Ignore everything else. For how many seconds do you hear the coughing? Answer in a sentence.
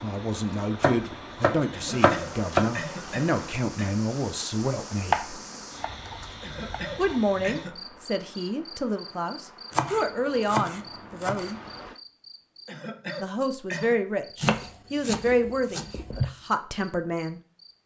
The coughing can be heard for 5 seconds in total.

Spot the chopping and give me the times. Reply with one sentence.
You can hear the chopping from 0.8 to 2.8 s, from 5.1 to 7.2 s, from 9.7 to 11.6 s and from 14.4 to 16.2 s.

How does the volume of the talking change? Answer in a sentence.
The loudness of the talking stays about the same.